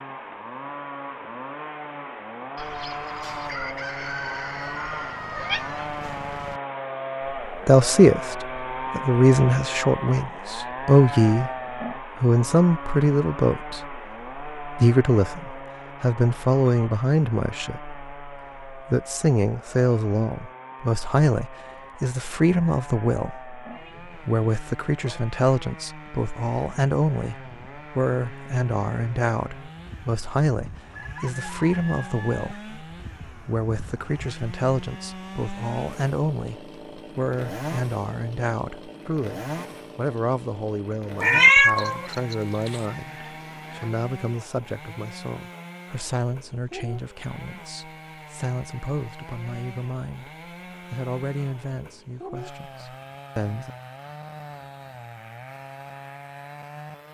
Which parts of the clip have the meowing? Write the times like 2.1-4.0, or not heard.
4.9-5.8, 41.2-42.8.